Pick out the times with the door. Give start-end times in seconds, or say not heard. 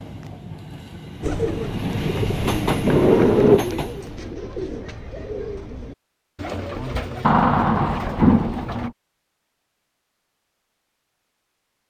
2.7-3.6, 7.2-8.9.